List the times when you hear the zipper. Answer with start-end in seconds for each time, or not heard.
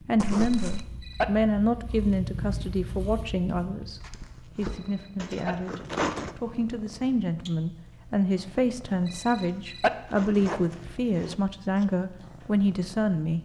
0.2-0.8, 5.2-6.3, 9.3-11.3.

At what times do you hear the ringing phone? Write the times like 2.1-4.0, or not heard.
0.4-1.2, 4.7-5.5, 9.1-9.9.